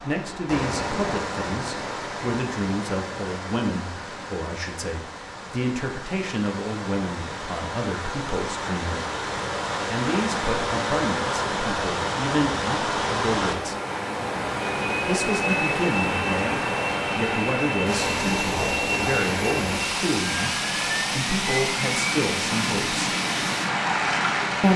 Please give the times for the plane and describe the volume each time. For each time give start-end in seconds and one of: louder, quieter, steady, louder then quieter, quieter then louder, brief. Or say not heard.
14.8-24.7 steady.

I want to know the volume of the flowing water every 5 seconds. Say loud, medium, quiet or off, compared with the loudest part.
medium, medium, loud, loud, loud.